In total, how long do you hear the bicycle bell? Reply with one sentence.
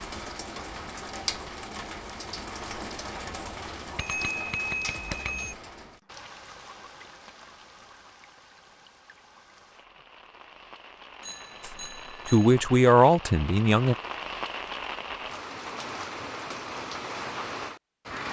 You can hear the bicycle bell for 3 seconds altogether.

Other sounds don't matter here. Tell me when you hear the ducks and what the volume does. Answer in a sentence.
You can't hear the ducks here.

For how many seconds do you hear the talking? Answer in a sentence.
The talking can be heard for 2 seconds in total.